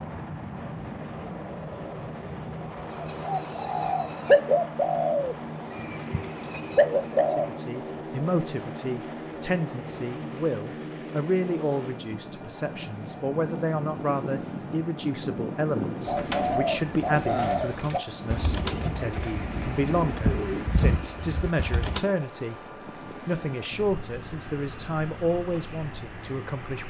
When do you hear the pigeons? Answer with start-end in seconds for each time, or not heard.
2.9-7.5, 16.1-22.0.